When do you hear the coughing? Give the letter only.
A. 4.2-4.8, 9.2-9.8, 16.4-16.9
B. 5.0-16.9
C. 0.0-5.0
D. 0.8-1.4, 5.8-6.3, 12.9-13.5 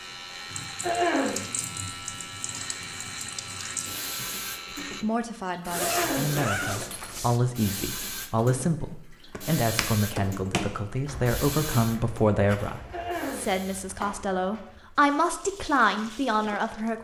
D.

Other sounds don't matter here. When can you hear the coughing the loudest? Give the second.
1 s.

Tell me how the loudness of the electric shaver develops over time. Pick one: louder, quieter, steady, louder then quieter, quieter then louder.
steady.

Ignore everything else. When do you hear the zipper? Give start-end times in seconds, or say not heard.
5.7-7.4.